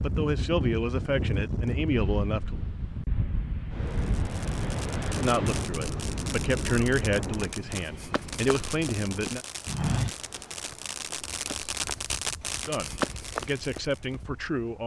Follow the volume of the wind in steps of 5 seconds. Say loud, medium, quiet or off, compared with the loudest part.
loud, loud, quiet.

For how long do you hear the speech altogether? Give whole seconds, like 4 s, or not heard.
9 s.